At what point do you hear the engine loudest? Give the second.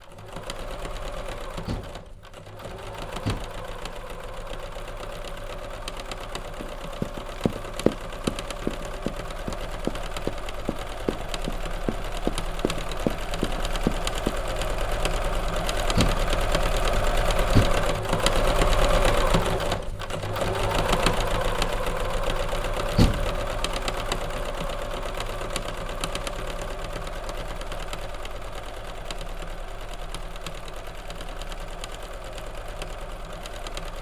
19 s.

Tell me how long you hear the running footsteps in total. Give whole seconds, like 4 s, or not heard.
8 s.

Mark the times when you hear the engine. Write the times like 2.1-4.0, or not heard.
0.0-33.9.